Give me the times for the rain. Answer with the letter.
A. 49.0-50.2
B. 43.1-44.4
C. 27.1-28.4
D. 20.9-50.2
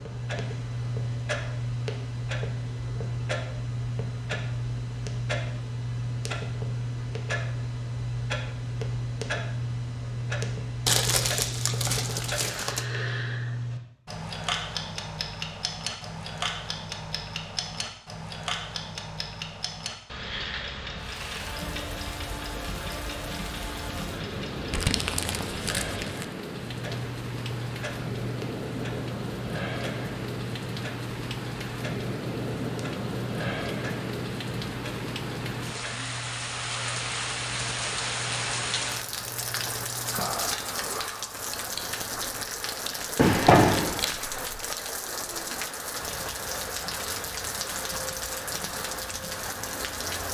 D.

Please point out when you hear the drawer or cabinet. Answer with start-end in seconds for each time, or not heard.
43.1-44.4.